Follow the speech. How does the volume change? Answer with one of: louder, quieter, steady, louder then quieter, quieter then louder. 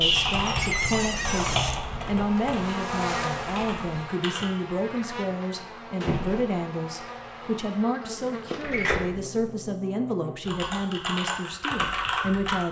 steady.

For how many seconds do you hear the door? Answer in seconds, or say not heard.
3 s.